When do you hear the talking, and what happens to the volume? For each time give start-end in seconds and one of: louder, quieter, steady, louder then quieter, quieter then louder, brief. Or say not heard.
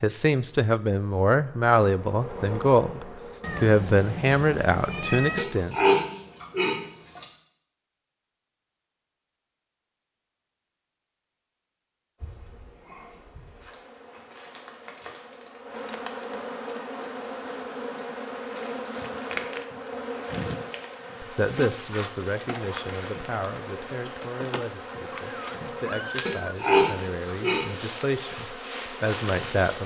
0.0-5.8 steady
21.2-29.8 quieter then louder.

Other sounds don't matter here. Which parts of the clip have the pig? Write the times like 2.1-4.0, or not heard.
5.3-7.2, 26.2-27.6.